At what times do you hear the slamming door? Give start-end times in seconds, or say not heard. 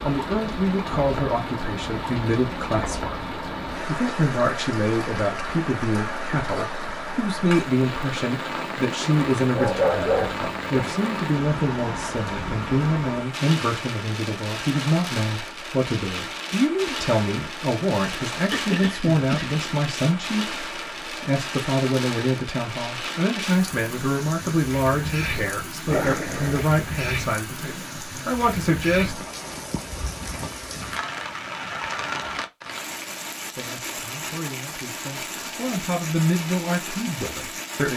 not heard.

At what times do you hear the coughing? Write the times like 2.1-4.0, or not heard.
18.4-19.6.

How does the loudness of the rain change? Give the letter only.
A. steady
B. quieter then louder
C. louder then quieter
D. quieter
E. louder
A.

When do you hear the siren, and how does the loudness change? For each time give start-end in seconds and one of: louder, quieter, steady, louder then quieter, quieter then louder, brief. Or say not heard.
not heard.